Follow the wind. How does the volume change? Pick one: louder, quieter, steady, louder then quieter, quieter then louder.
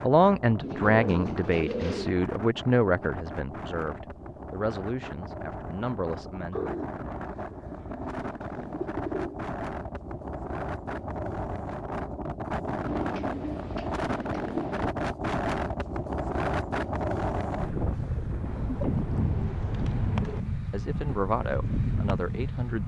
louder.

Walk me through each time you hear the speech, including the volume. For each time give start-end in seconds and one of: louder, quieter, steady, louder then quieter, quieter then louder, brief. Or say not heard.
0.0-6.7 quieter
20.7-22.8 brief.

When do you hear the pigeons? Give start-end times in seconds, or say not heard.
0.6-2.2, 6.5-9.4, 12.8-14.9, 18.4-20.4.